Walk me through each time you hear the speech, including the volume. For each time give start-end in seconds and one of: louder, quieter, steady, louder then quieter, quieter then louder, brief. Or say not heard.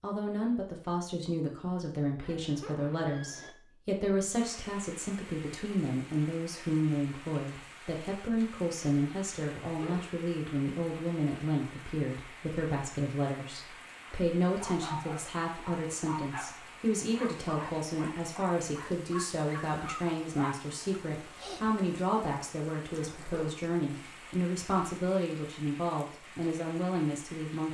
0.0-27.6 steady.